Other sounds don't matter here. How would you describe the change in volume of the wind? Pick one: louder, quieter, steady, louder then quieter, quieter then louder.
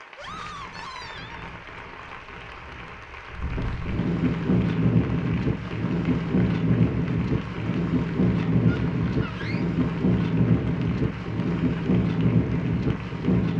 louder.